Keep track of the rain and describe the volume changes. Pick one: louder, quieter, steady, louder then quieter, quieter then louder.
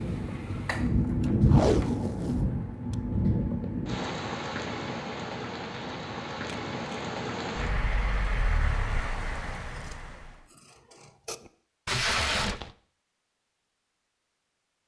quieter.